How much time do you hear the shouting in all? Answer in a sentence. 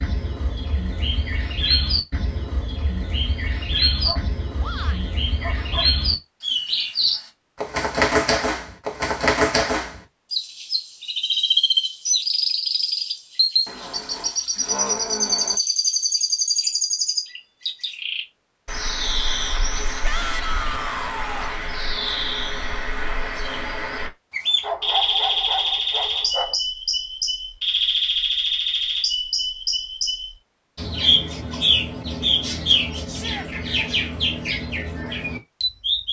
You can hear the shouting for 3 seconds altogether.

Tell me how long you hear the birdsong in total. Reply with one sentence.
The birdsong can be heard for 36 seconds in total.